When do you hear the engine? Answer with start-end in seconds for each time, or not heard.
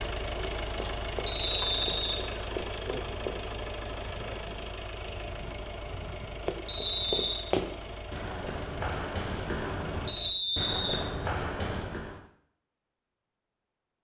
0.0-10.3.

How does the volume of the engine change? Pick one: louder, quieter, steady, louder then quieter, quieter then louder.
quieter.